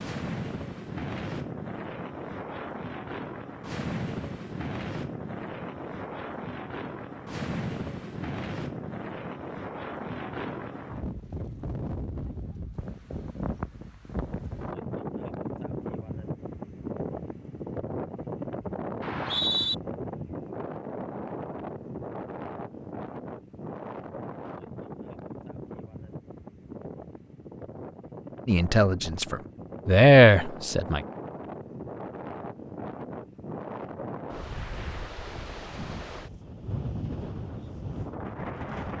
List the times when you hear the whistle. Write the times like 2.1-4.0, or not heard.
19.0-19.8.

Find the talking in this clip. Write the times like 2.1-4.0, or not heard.
28.4-31.0.